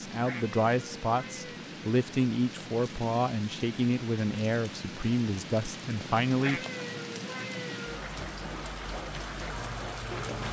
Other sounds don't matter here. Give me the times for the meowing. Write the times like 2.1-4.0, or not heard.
0.2-1.6, 6.3-8.0.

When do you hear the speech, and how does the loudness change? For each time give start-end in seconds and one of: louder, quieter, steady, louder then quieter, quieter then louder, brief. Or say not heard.
0.0-6.6 steady.